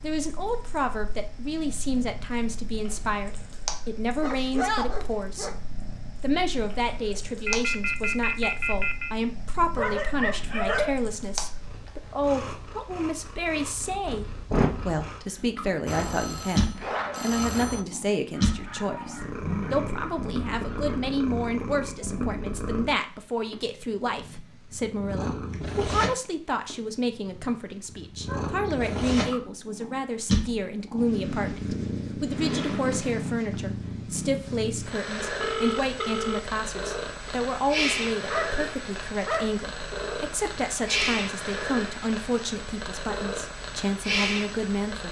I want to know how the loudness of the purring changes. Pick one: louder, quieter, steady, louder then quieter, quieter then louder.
louder.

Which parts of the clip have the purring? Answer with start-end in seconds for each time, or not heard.
0.0-45.0.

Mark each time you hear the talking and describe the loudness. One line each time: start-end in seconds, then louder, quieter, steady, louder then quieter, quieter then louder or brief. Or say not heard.
0.0-5.6 steady
6.2-45.0 steady.